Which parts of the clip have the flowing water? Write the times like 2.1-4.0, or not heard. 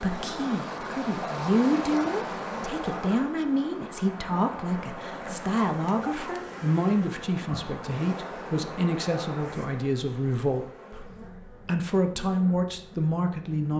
0.0-9.7.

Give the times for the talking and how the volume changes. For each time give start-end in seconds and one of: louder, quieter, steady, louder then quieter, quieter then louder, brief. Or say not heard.
0.0-13.7 steady.